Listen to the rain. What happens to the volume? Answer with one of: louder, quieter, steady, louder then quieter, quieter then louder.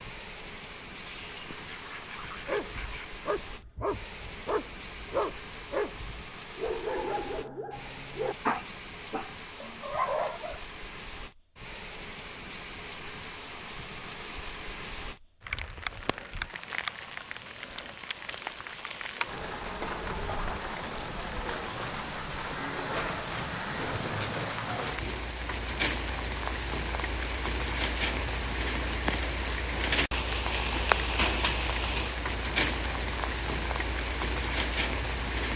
louder.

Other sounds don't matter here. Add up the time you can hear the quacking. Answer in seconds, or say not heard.
2 s.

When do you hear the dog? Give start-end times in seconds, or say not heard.
2.4-10.6.